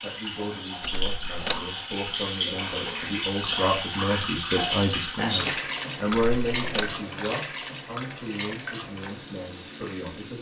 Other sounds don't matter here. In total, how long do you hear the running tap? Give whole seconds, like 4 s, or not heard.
10 s.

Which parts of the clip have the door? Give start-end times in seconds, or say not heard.
0.8-1.7, 6.1-7.0.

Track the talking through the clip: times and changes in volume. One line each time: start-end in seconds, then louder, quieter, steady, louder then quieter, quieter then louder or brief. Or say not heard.
0.0-10.3 louder then quieter.